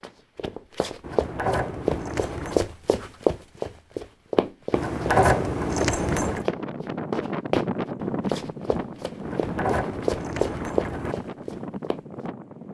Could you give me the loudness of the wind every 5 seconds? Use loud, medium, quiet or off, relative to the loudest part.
off, loud, medium.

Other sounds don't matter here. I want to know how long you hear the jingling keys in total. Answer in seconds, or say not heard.
5 s.